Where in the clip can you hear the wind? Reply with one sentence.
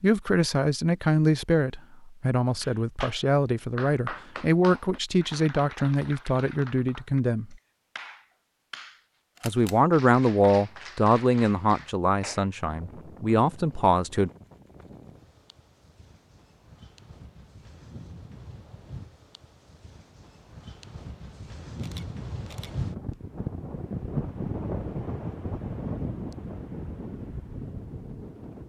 The wind can be heard from 12.7 to 28.6 s.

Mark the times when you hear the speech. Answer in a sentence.
The speech can be heard from 0.0 to 7.5 s and from 9.4 to 14.3 s.